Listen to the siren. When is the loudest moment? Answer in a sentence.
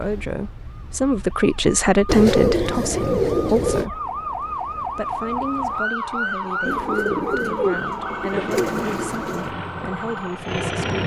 The loudest moment of the siren is at 6 seconds.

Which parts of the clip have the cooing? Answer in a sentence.
You can hear the cooing from 2.0 to 3.9 s and from 6.7 to 9.5 s.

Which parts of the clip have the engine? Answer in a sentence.
You can hear the engine from 8.3 to 11.0 s.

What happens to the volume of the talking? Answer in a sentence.
The loudness of the talking goes down.